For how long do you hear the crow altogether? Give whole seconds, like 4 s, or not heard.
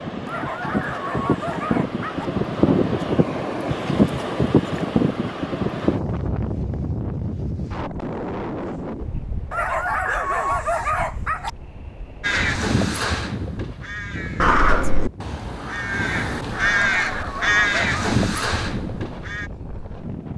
7 s.